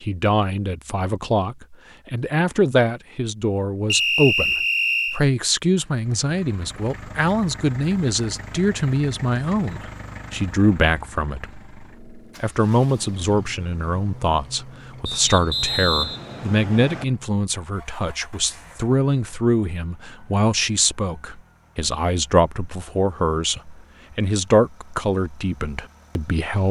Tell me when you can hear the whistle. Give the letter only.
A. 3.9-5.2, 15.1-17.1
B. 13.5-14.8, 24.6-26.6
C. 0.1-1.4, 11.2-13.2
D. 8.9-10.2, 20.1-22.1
A.